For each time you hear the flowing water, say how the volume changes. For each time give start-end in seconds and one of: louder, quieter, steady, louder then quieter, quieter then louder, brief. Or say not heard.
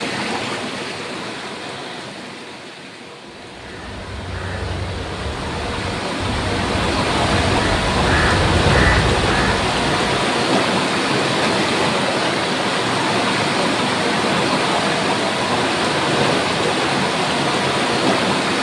0.0-18.5 louder.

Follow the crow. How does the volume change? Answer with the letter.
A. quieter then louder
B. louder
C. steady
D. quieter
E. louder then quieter
B.